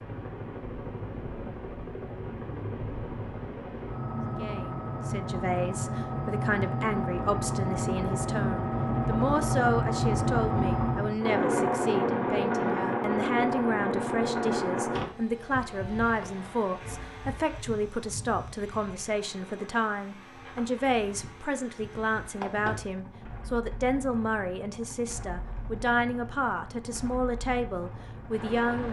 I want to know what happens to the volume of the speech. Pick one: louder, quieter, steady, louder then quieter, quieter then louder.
steady.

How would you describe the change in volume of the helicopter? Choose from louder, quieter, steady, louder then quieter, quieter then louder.
louder then quieter.